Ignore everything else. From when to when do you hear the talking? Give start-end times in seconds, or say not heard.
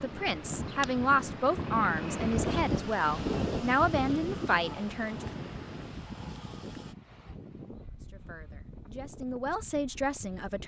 0.0-5.2, 8.0-10.6.